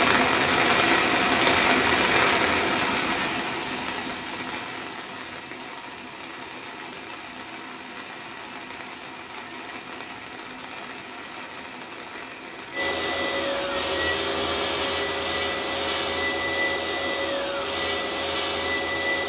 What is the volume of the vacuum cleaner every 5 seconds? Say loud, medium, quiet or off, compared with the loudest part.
off, off, loud, loud.